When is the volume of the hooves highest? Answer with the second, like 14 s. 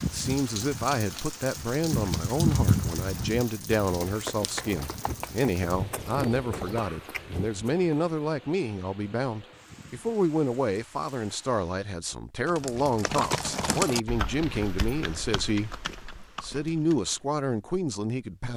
3 s.